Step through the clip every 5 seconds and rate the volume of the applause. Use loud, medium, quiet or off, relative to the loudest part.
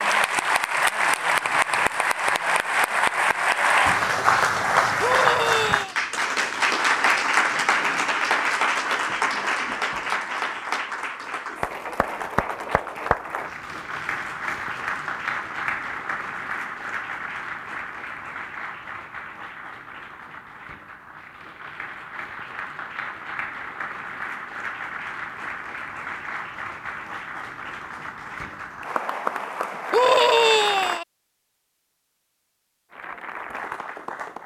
loud, loud, medium, medium, quiet, medium, medium.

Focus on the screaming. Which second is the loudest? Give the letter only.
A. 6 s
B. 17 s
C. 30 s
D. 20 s
C.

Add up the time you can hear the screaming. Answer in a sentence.
The screaming can be heard for 2 seconds in total.